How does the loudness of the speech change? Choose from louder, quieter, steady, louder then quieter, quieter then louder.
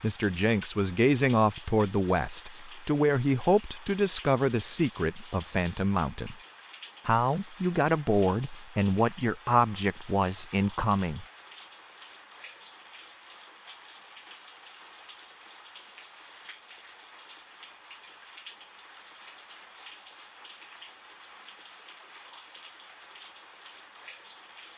steady.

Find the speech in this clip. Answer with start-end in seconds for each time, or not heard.
0.0-6.3, 7.0-11.2.